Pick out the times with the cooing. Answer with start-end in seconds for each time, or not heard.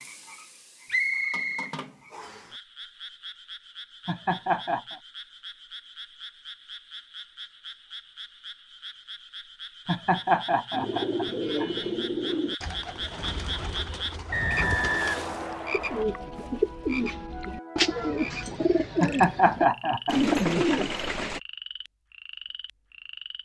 10.7-21.4.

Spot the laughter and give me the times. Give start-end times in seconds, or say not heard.
4.0-5.0, 9.8-11.8, 19.0-20.9.